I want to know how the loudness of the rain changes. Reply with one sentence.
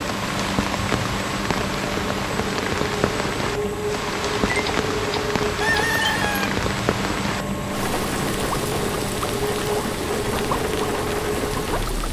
The volume of the rain stays about the same.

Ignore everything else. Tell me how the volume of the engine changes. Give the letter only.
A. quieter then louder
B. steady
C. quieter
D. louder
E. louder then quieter
B.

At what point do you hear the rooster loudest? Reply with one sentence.
The loudest moment of the rooster is at 6 seconds.